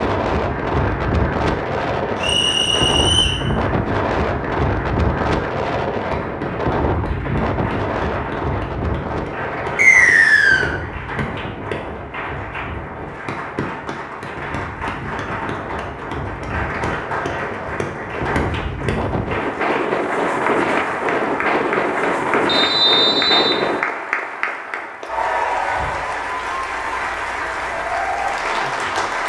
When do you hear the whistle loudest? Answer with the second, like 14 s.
10 s.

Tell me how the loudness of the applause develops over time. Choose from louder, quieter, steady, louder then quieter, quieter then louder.
louder.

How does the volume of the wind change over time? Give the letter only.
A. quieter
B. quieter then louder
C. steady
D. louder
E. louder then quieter
B.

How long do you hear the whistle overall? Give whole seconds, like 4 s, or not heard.
3 s.